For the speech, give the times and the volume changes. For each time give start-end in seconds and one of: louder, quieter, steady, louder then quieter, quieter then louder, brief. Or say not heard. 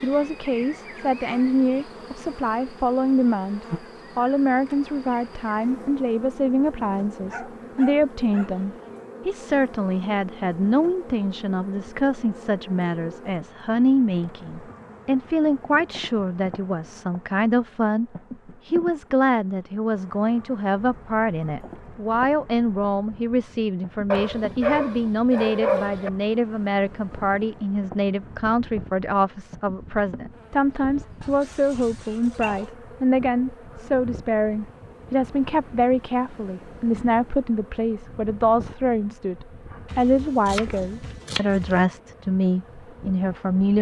0.0-43.7 steady.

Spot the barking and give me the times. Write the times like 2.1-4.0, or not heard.
7.2-8.9, 24.1-26.1, 31.2-32.7.